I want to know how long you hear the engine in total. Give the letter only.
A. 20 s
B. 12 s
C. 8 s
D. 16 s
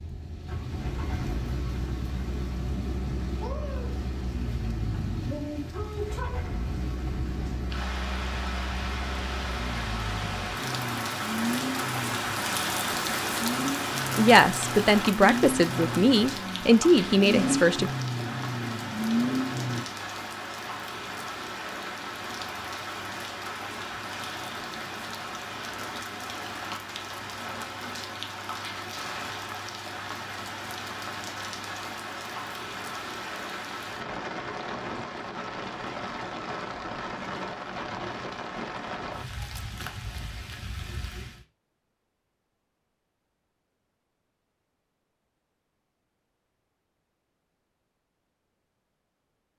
A.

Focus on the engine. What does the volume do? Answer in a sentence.
The loudness of the engine goes up.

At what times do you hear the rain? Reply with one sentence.
The rain can be heard from 0.0 to 41.5 s.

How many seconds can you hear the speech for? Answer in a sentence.
The speech can be heard for 4 seconds in total.